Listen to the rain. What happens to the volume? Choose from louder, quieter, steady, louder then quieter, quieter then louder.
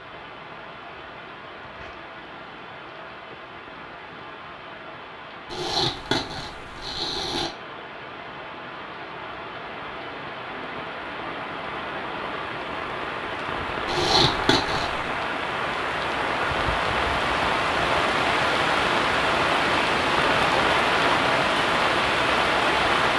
louder.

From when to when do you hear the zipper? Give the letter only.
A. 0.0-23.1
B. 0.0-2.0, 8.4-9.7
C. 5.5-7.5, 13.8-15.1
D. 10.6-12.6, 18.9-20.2
C.